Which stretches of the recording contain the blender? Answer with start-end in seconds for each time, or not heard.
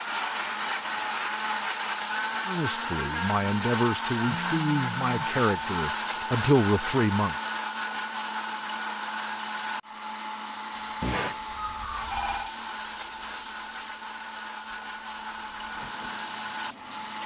0.0-17.2.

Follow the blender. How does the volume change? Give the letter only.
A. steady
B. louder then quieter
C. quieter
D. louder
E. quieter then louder
C.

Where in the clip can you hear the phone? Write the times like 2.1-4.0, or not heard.
4.2-5.3, 11.0-12.5.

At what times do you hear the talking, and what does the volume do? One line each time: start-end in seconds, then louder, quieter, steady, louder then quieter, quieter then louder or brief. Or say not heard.
2.5-7.3 louder.